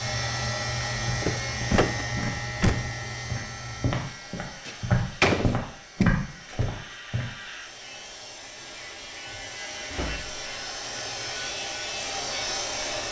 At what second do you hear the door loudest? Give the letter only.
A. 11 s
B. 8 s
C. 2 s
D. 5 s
D.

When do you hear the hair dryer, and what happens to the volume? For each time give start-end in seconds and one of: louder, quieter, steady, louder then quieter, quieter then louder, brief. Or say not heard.
0.0-13.0 quieter then louder.